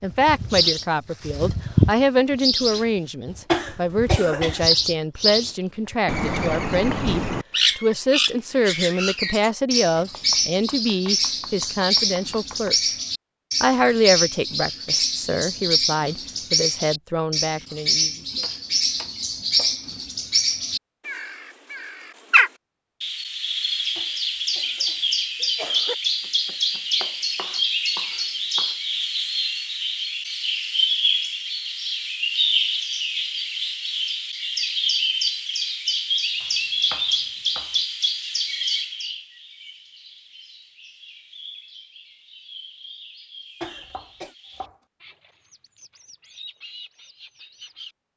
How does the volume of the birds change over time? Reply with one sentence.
The volume of the birds goes down.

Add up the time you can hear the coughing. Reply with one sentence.
You can hear the coughing for 4 seconds altogether.